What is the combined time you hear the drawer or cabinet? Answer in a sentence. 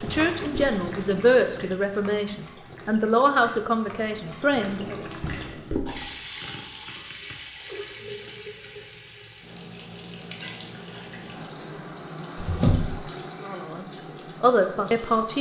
The drawer or cabinet can be heard for 2 seconds in total.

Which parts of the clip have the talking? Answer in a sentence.
The talking can be heard from 0.0 to 5.0 s and from 13.4 to 15.3 s.